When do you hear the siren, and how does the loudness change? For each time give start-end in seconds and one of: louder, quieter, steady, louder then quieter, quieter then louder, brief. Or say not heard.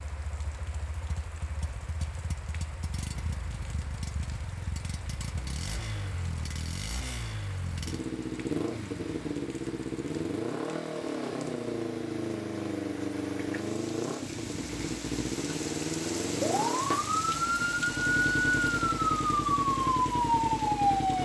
16.4-21.2 steady.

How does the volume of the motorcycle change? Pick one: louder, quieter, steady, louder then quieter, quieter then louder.
louder.